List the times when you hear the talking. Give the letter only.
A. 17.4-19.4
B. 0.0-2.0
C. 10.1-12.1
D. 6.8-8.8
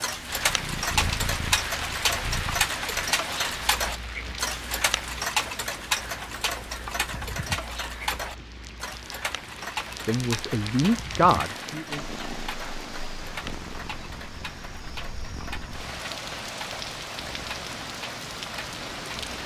C.